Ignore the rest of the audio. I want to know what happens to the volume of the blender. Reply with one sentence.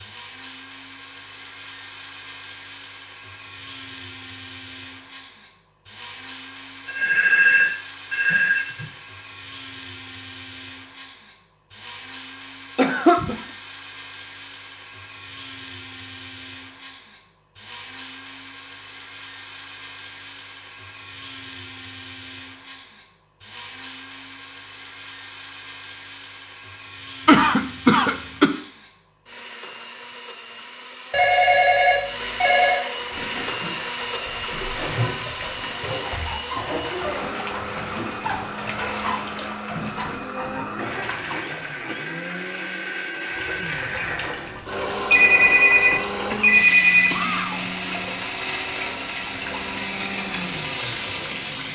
The volume of the blender goes up.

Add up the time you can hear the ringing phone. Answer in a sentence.
You can hear the ringing phone for 6 seconds altogether.